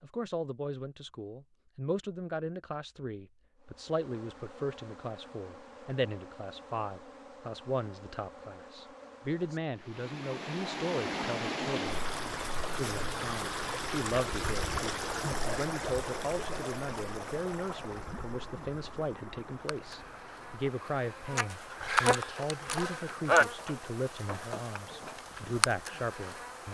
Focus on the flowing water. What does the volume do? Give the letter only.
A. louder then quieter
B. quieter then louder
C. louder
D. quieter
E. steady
D.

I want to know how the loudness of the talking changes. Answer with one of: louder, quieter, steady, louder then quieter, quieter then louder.
steady.